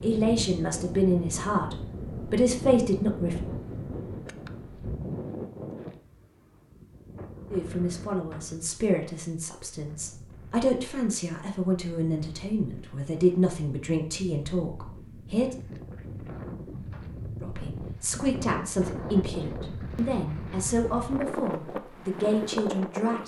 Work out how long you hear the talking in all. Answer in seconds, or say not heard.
17 s.